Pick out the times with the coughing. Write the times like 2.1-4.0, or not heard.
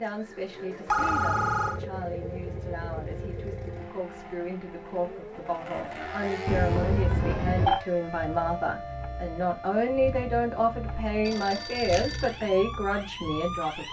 not heard.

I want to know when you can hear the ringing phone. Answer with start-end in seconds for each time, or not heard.
0.8-1.8, 6.5-7.8, 11.2-12.4.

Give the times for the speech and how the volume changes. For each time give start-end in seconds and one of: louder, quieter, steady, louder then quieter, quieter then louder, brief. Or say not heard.
0.0-13.8 louder.